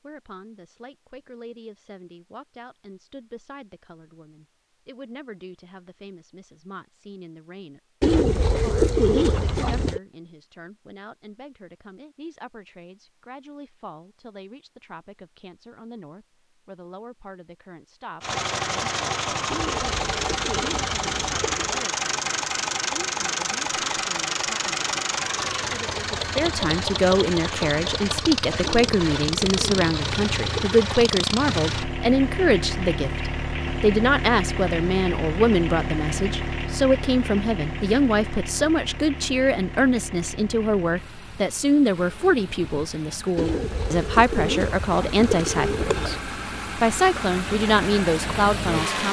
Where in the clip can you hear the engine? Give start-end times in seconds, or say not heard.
18.2-49.0.